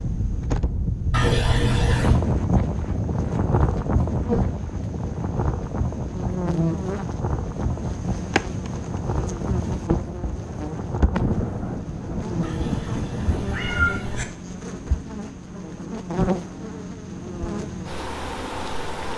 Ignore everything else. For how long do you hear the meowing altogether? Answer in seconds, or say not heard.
3 s.